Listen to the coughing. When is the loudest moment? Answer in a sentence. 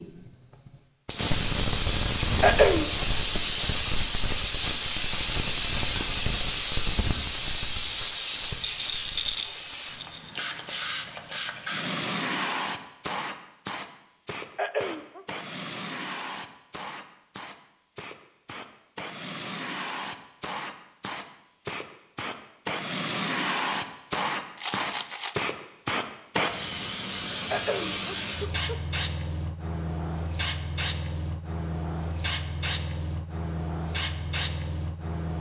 The volume of the coughing peaks at 3 seconds.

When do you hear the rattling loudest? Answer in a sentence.
The loudest moment of the rattling is at 9 seconds.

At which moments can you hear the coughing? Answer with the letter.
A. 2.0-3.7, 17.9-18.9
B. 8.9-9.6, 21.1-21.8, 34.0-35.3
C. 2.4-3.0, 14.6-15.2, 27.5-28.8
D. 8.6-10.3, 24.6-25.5
C.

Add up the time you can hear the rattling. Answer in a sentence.
The rattling can be heard for 3 seconds in total.